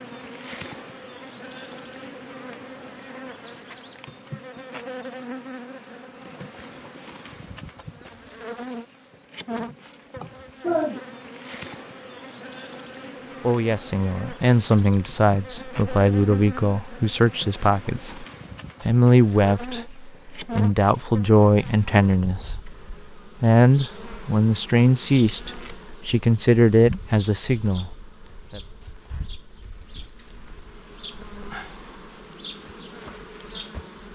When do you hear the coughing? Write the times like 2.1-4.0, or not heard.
10.2-10.9.